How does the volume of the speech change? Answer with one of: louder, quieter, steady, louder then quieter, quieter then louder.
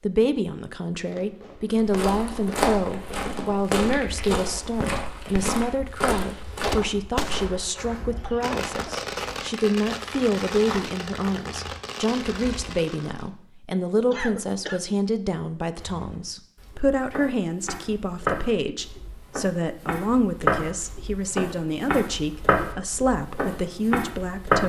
steady.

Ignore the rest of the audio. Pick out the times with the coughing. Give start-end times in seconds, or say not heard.
8.1-8.9, 14.1-14.8.